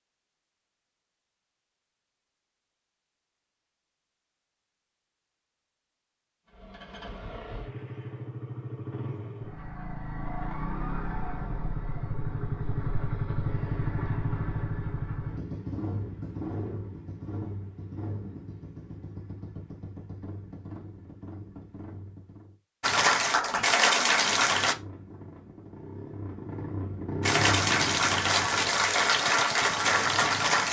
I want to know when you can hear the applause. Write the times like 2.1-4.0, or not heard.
22.8-24.8, 27.2-30.6.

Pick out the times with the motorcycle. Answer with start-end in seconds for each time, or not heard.
6.5-22.6, 24.2-30.6.